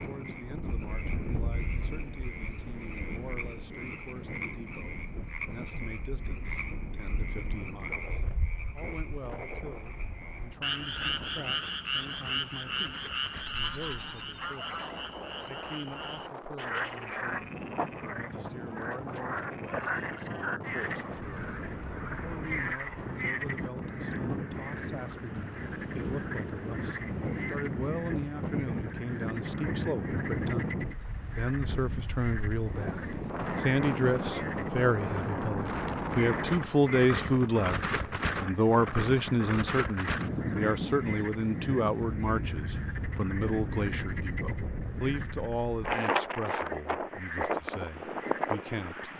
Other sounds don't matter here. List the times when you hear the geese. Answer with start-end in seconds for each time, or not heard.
13.4-15.2.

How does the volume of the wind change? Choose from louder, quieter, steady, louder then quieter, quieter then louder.
louder.